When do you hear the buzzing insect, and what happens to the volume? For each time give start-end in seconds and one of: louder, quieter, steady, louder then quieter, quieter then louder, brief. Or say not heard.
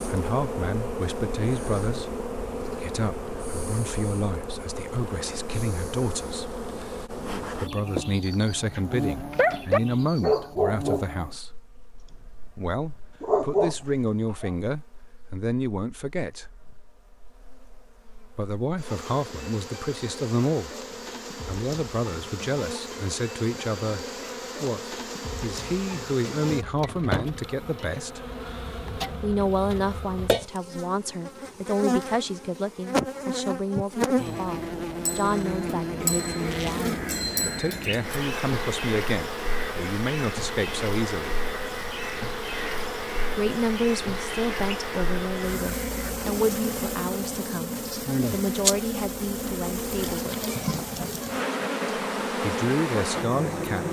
0.0-53.8 quieter then louder.